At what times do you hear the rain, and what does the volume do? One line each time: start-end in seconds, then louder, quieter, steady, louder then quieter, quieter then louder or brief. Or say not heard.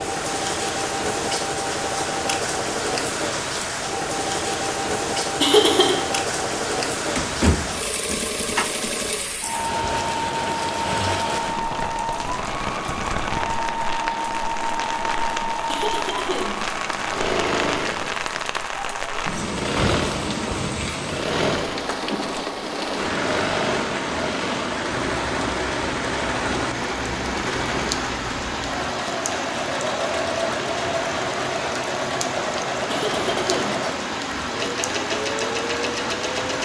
0.0-36.6 steady.